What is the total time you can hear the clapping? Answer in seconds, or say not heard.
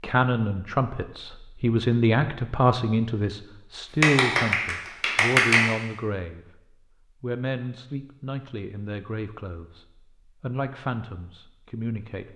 2 s.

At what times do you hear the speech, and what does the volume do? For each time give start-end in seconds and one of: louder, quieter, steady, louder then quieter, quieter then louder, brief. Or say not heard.
0.0-12.3 quieter.